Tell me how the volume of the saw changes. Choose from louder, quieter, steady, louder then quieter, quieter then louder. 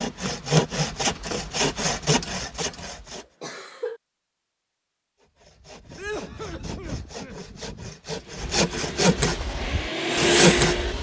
quieter then louder.